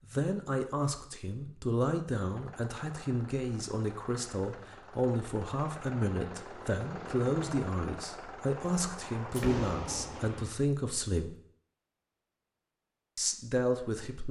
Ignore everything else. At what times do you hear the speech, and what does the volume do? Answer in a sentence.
You can hear the speech from 0.1 to 11.3 s, at a steady volume; and briefly from 13.2 to 14.2 s.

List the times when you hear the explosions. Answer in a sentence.
The explosions can be heard from 9.3 to 10.5 s.